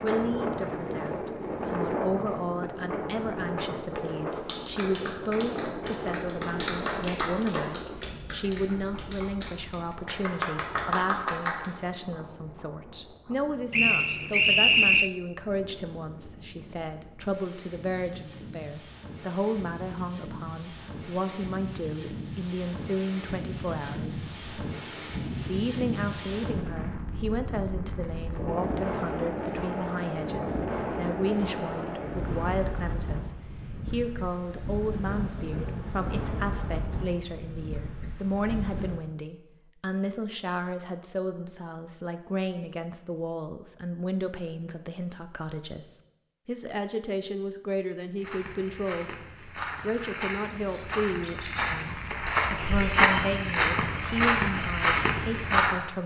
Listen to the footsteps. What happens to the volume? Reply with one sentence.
The loudness of the footsteps goes up.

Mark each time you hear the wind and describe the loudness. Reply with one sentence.
You can hear the wind from 0.0 to 39.0 s, getting quieter then louder.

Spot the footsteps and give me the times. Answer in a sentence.
The footsteps can be heard from 48.1 to 55.9 s.